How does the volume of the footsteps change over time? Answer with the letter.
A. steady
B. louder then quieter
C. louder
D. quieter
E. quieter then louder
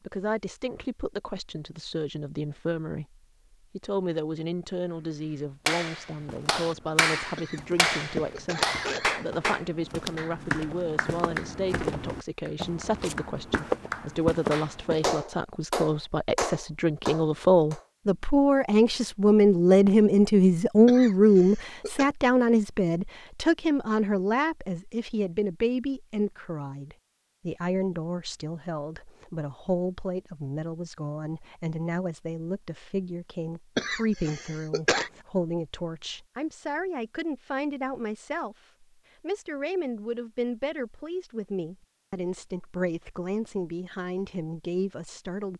E.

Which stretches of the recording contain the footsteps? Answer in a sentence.
The footsteps can be heard from 6.2 to 15.2 s.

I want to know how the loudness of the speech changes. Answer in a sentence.
The loudness of the speech goes up, then down.